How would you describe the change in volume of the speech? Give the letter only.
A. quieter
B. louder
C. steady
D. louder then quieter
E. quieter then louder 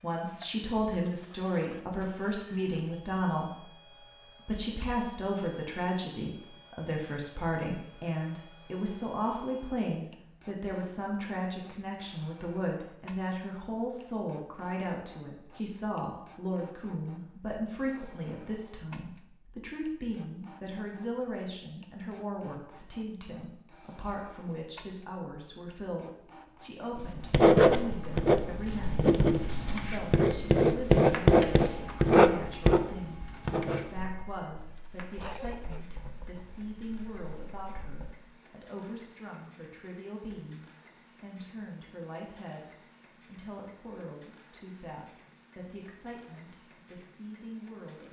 A.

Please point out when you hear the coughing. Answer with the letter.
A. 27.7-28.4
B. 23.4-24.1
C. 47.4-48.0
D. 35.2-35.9
D.